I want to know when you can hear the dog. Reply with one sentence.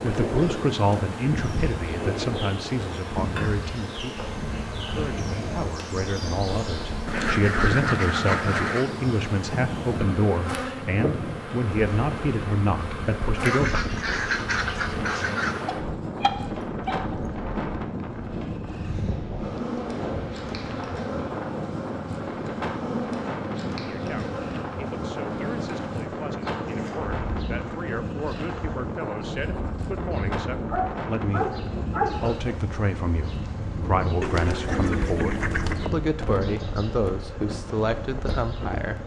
You can hear the dog from 15.7 to 17.1 s and from 30.7 to 32.5 s.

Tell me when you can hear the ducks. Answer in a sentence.
The ducks can be heard from 7.0 to 8.9 s, from 13.4 to 15.7 s and from 34.2 to 35.9 s.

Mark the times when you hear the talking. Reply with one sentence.
The talking can be heard from 0.0 to 13.9 s and from 23.9 to 39.0 s.